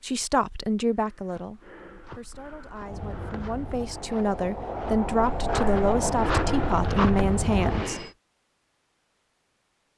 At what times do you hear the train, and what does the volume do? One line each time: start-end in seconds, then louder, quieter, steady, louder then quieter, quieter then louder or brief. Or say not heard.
2.8-8.2 louder.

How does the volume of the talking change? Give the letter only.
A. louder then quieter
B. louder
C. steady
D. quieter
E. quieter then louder
E.